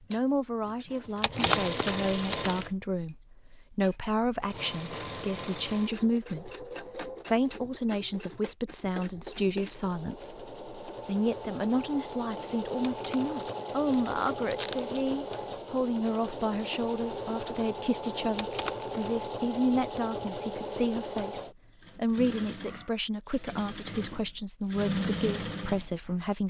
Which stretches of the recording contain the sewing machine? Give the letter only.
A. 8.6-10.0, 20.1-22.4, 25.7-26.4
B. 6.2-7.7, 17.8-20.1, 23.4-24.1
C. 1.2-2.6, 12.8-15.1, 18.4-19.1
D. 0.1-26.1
D.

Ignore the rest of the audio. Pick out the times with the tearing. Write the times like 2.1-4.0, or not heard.
1.2-2.6, 12.8-15.1, 18.4-19.1.